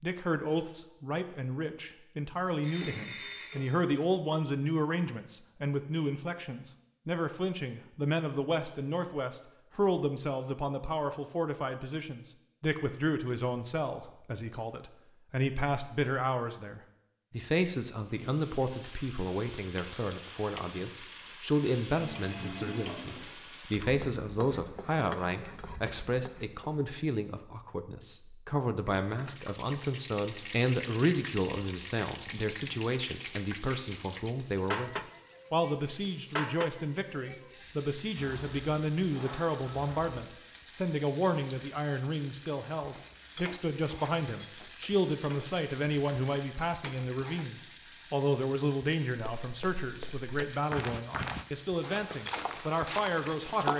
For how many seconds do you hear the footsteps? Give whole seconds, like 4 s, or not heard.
4 s.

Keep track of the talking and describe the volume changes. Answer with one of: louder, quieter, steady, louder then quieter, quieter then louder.
steady.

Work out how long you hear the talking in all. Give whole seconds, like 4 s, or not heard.
54 s.